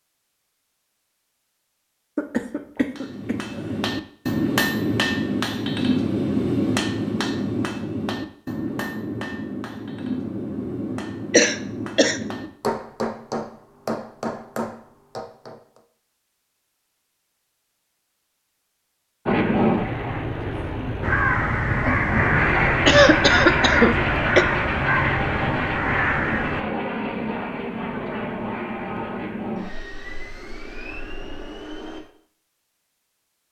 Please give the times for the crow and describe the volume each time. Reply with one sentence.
The crow can be heard from 21.0 to 26.6 s, at a steady volume.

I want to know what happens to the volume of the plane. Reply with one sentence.
The loudness of the plane goes down.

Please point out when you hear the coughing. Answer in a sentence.
You can hear the coughing from 2.1 to 3.8 s, from 11.3 to 12.2 s and from 22.9 to 24.4 s.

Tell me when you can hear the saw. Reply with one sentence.
You can't hear the saw here.